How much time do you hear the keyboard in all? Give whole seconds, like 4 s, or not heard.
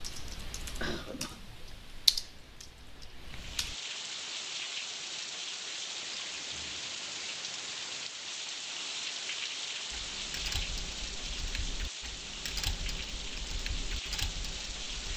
9 s.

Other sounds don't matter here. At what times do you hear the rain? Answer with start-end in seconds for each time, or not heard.
3.3-15.1.